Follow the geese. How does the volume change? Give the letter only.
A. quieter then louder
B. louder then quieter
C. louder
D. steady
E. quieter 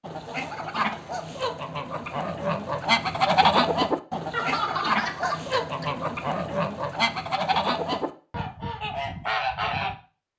B.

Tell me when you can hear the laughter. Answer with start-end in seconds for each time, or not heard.
4.3-5.8.